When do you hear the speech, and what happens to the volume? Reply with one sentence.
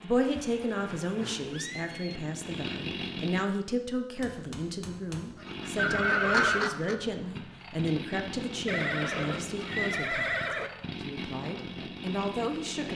The speech can be heard from 0.0 to 12.9 s, at a steady volume.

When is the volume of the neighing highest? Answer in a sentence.
The volume of the neighing peaks at 6 seconds.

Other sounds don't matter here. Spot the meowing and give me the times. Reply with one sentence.
You can't hear the meowing here.